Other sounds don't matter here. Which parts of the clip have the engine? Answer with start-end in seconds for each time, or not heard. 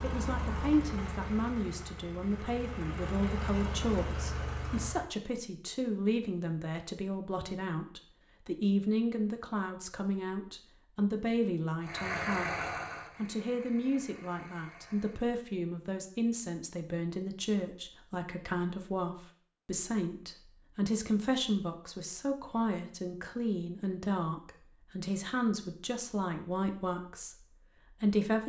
0.0-5.1, 11.8-15.2.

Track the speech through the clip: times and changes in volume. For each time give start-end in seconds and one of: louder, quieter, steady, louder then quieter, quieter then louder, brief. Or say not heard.
0.0-28.4 steady.